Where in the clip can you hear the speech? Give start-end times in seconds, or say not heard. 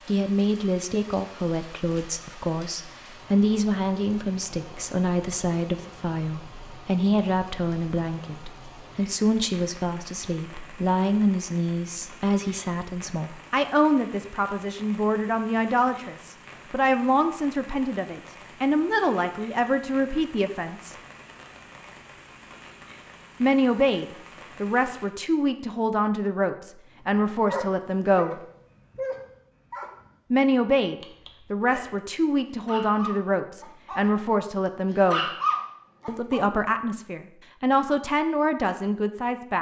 0.1-20.9, 23.4-28.4, 30.3-35.2, 36.0-39.5.